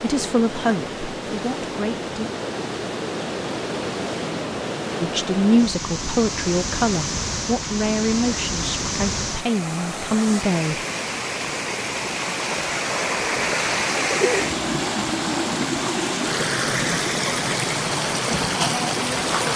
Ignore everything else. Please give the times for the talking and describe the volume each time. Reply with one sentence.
You can hear the talking briefly from 0.0 to 2.3 s; and from 5.0 to 10.8 s, getting quieter then louder.